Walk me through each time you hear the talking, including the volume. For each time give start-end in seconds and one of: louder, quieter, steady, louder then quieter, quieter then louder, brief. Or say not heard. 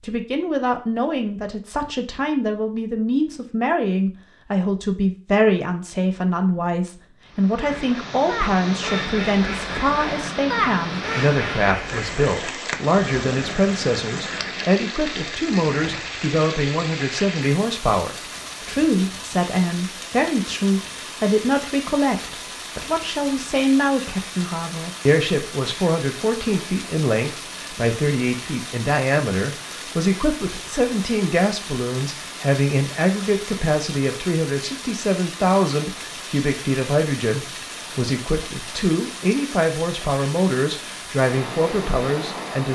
0.0-42.7 steady.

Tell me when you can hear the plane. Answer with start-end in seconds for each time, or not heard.
not heard.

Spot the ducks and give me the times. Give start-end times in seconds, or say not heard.
7.6-14.7.